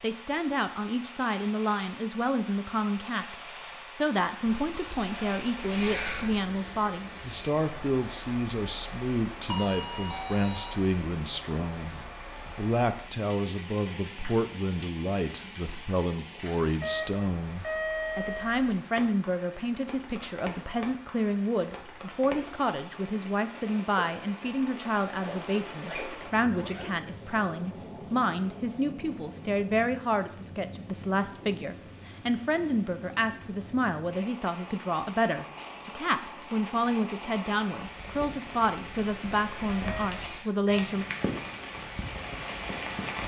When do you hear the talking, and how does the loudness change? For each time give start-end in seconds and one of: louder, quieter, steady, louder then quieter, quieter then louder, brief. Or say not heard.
0.0-41.0 steady.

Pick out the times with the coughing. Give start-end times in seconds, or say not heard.
not heard.